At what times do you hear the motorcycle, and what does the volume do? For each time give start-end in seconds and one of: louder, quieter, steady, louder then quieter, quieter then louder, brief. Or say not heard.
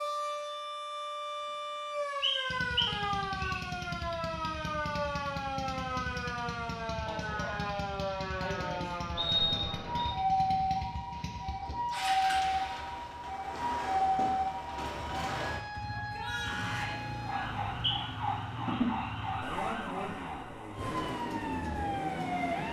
2.5-22.6 steady.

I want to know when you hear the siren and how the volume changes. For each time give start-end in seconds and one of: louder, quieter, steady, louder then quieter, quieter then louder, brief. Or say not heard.
0.0-22.6 steady.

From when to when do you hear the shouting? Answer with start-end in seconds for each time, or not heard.
15.9-17.0.